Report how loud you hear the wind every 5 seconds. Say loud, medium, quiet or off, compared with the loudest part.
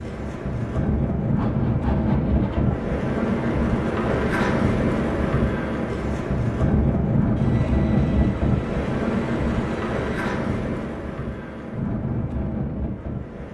loud, loud, medium.